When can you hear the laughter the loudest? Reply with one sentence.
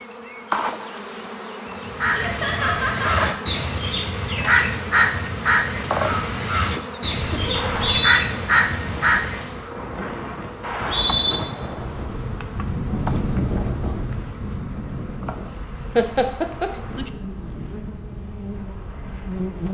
The volume of the laughter peaks at 16 seconds.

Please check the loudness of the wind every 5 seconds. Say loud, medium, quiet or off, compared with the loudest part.
off, medium, loud, medium.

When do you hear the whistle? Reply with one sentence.
You can hear the whistle from 7.5 to 8.2 s and from 10.6 to 11.4 s.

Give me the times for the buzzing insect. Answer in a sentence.
The buzzing insect can be heard from 0.0 to 19.6 s.